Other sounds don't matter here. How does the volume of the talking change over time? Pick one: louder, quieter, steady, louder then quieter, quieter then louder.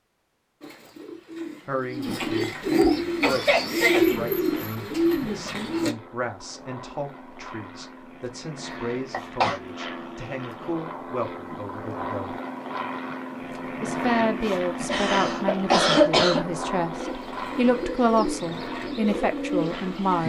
louder.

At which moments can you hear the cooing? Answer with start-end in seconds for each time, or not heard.
0.6-6.0, 16.9-20.2.